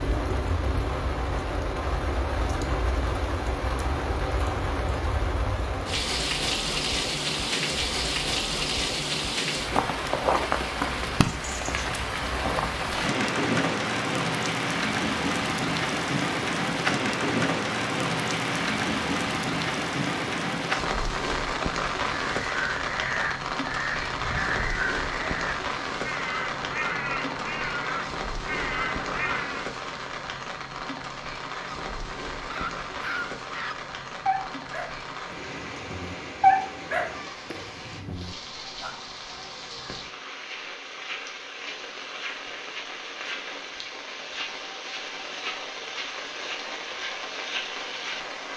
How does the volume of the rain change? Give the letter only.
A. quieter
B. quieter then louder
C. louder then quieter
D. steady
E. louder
A.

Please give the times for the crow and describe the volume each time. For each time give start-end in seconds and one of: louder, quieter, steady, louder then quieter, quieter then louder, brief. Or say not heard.
22.2-29.7 steady.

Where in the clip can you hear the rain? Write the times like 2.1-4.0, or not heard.
0.0-48.5.